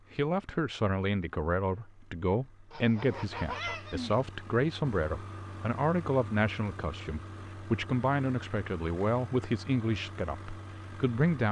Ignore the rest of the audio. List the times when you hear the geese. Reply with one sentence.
You can hear the geese from 2.7 to 4.2 s.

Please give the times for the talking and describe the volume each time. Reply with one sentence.
The talking can be heard from 0.1 to 11.4 s, at a steady volume.